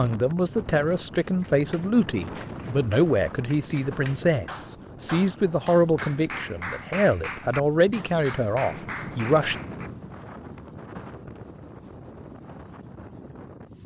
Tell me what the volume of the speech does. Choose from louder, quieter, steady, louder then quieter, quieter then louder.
steady.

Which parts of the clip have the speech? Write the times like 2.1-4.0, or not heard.
0.0-9.6.